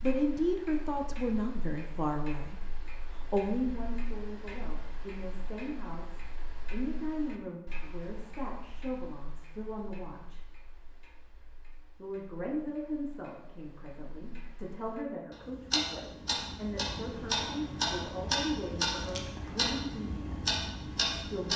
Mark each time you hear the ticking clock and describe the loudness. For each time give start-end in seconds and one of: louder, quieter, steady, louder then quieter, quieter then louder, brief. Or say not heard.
0.0-21.5 quieter then louder.